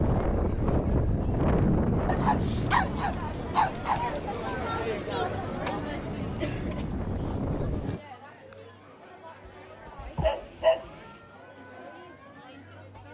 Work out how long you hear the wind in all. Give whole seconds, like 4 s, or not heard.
8 s.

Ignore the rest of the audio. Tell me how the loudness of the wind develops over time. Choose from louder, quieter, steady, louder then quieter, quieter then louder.
quieter then louder.